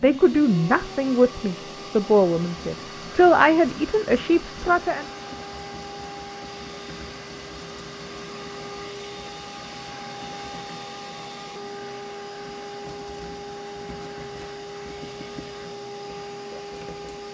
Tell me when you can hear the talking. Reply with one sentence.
The talking can be heard from 0.0 to 5.0 s.